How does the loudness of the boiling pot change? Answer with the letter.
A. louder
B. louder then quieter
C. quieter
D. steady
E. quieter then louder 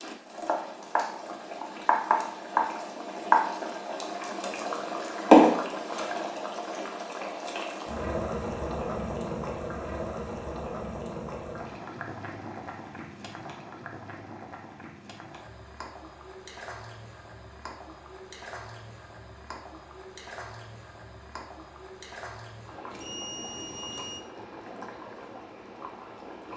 C.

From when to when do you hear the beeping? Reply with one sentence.
The beeping can be heard from 22.9 to 24.2 s.